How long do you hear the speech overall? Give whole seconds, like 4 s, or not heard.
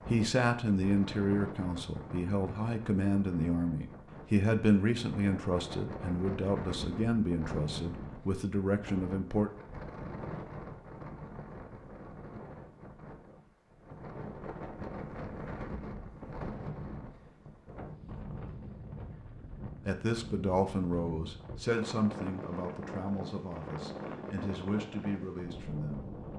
16 s.